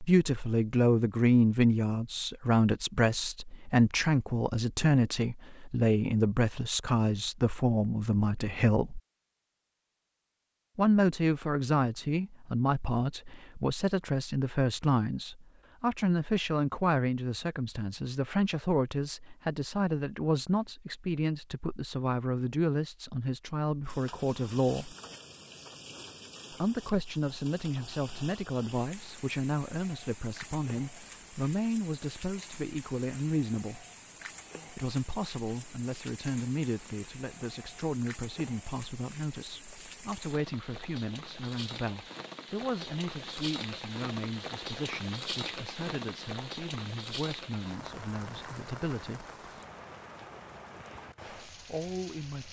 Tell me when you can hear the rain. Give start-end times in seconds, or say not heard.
23.8-52.4.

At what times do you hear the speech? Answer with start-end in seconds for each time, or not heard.
0.0-9.0, 10.8-24.9, 26.5-33.9, 34.7-49.2, 51.5-52.4.